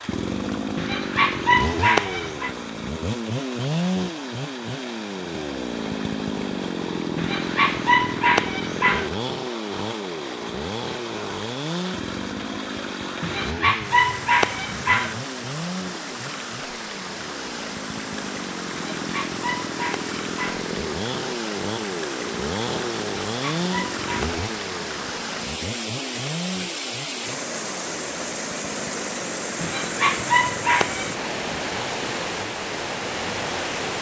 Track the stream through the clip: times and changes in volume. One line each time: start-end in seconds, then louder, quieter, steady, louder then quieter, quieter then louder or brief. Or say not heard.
0.0-33.9 louder.